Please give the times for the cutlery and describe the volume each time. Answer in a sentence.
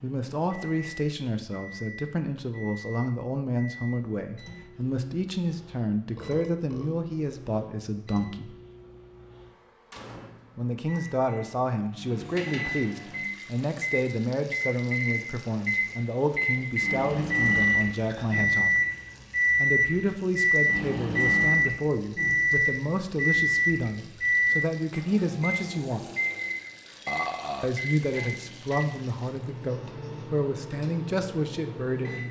The cutlery can't be heard in this clip.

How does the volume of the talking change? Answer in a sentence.
The volume of the talking stays about the same.